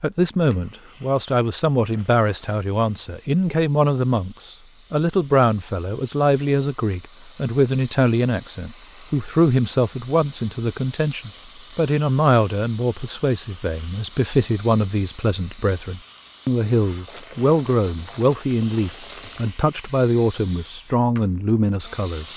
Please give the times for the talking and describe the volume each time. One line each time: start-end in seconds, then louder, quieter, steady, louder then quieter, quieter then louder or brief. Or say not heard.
0.0-22.3 steady.